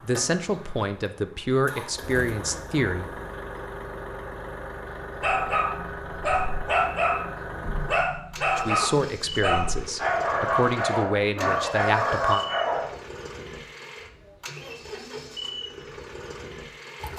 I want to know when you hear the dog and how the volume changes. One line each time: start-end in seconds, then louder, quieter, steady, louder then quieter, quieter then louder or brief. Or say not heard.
5.2-12.9 steady.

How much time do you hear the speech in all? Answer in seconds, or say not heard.
7 s.